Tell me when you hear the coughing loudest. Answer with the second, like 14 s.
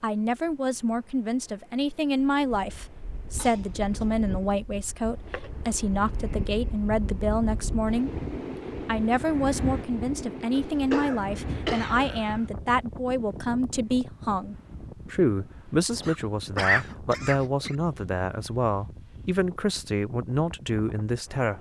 17 s.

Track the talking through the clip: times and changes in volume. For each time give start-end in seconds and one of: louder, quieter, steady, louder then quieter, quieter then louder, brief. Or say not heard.
0.0-21.5 steady.